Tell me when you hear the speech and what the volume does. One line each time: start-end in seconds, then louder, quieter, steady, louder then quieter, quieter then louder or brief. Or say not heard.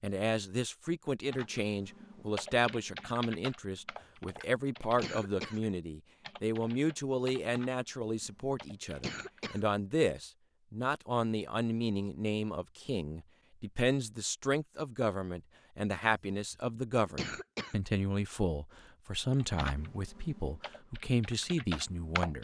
0.0-22.3 steady.